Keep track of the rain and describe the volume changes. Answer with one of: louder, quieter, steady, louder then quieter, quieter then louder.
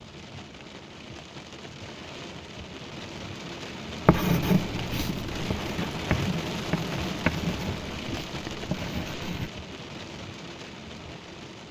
louder then quieter.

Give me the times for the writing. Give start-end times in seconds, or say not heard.
4.0-9.5.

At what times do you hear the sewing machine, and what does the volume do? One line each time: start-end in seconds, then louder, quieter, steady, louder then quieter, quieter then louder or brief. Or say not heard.
not heard.